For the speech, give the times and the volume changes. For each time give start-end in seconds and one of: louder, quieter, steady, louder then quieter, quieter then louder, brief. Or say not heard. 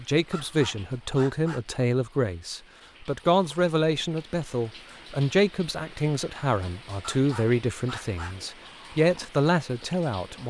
0.0-10.4 steady.